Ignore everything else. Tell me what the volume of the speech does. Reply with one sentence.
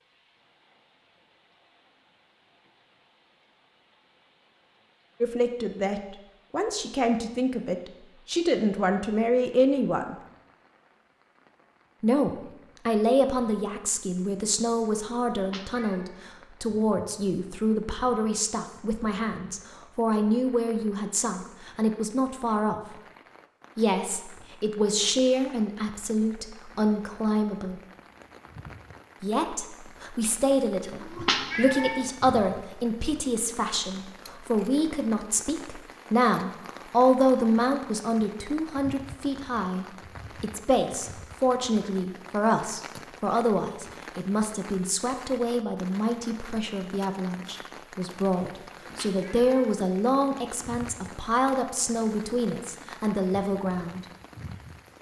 The volume of the speech stays about the same.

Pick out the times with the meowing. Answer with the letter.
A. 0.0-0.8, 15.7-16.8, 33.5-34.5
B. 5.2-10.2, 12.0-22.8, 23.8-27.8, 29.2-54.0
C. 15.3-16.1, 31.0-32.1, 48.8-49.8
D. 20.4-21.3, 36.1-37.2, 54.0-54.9
C.